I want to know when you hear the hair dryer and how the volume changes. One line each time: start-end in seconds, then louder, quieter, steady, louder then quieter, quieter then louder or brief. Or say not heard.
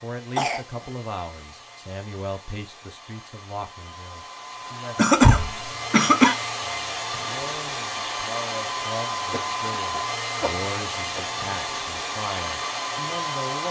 0.0-13.6 louder.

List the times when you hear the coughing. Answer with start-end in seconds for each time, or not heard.
0.3-0.9, 5.0-6.3, 9.3-11.3.